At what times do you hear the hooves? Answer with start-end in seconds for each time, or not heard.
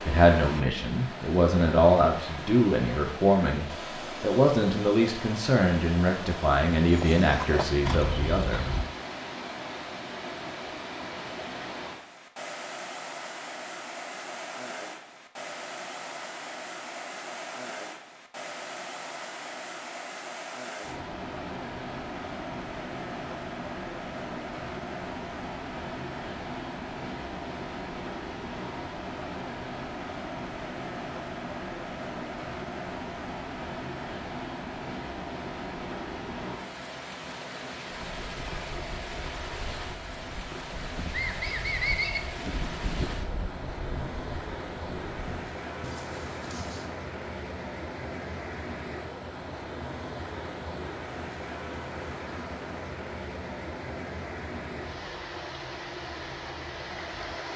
6.9-8.9, 37.9-46.9.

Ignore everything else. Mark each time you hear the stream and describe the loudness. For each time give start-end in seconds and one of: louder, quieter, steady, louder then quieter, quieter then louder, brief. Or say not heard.
0.0-57.5 steady.